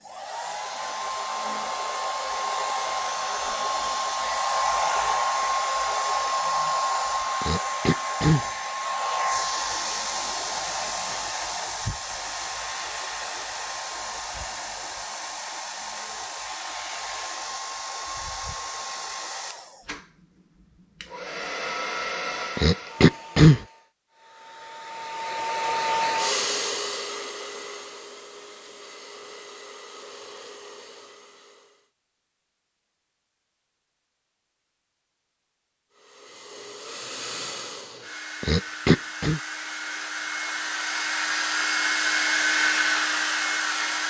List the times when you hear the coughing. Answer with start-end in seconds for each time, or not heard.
7.4-8.4, 22.6-23.6, 38.4-39.4.